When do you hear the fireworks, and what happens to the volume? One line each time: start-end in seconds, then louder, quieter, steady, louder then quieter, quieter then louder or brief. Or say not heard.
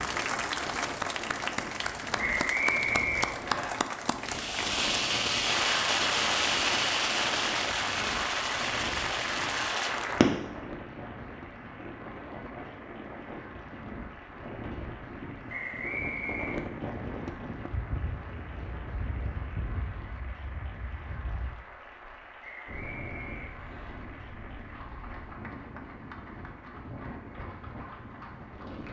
4.2-10.4 quieter.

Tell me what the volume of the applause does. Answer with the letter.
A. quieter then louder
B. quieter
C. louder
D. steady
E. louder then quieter
B.